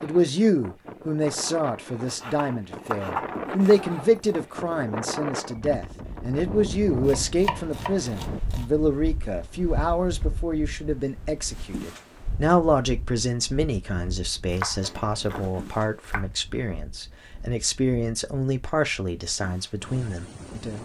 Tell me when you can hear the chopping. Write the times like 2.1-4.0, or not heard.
2.0-3.8, 7.0-8.7, 14.5-16.2.